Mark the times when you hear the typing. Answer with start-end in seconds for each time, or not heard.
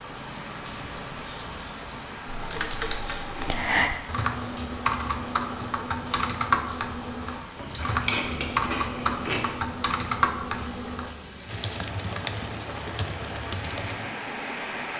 2.2-14.1.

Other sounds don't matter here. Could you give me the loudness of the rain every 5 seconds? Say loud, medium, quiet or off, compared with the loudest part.
loud, medium, loud.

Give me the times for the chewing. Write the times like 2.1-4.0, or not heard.
7.5-9.5.